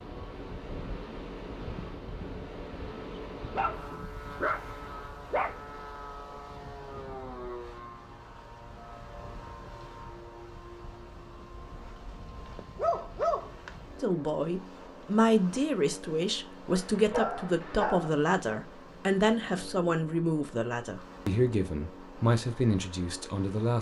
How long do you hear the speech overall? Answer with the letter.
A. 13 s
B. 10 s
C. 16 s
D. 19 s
B.